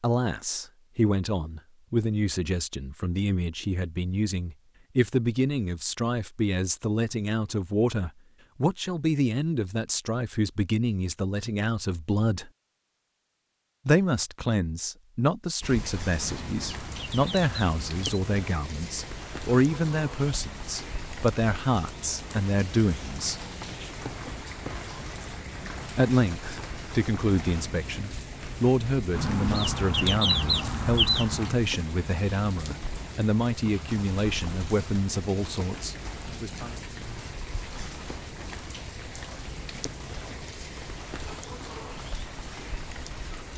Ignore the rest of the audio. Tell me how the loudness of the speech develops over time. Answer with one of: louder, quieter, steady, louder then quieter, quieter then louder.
steady.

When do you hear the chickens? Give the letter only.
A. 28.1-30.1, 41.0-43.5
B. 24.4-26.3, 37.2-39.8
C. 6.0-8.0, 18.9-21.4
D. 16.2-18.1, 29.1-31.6
D.